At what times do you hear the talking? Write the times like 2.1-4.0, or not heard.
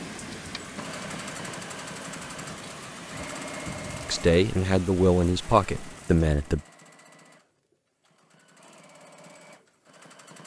4.0-6.6.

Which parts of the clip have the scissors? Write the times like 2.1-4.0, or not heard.
not heard.